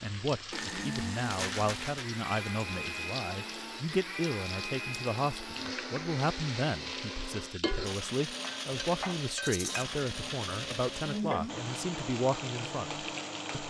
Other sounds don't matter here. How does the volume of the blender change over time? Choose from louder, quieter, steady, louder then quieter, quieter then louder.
steady.